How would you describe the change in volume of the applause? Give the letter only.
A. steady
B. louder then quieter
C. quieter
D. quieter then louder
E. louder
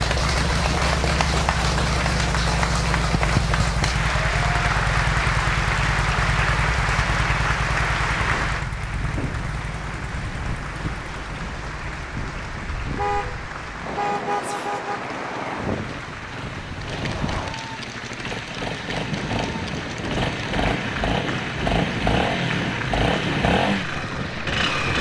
C.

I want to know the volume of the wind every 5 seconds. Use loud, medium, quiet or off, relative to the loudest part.
off, medium, loud, loud, loud.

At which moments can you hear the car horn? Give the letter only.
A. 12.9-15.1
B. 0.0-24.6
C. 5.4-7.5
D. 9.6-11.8
A.